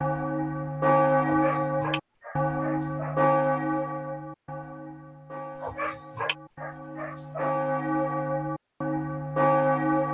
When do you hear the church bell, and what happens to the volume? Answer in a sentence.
The church bell can be heard from 0.0 to 10.0 s, getting quieter then louder.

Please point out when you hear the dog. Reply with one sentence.
You can hear the dog from 1.2 to 3.2 s and from 5.6 to 7.5 s.